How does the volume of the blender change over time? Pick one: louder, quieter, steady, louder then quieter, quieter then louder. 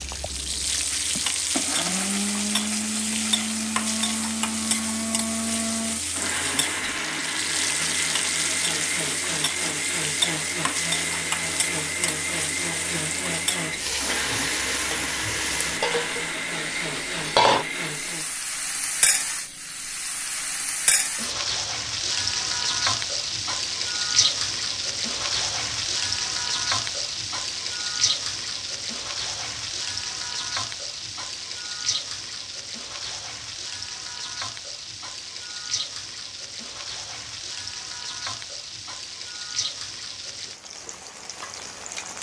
steady.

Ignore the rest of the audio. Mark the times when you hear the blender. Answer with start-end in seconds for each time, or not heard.
0.0-18.4.